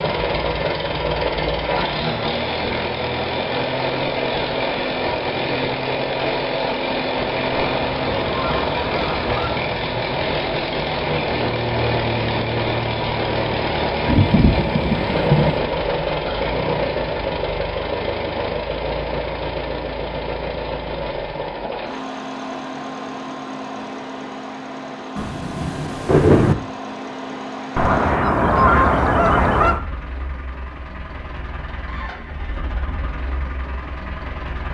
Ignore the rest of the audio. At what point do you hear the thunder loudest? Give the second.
26 s.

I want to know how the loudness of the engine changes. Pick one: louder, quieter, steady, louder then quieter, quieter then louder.
quieter.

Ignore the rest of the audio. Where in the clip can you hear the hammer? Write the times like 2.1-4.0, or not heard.
not heard.